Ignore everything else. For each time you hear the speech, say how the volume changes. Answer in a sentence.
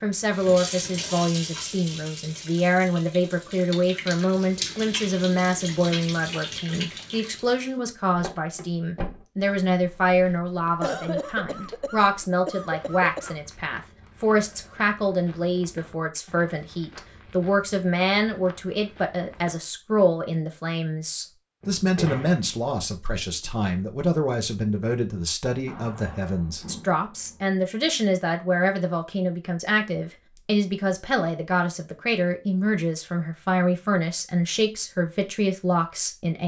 The speech can be heard from 0.0 to 36.4 s, at a steady volume.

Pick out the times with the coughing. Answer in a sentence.
You can hear the coughing from 10.8 to 13.3 s.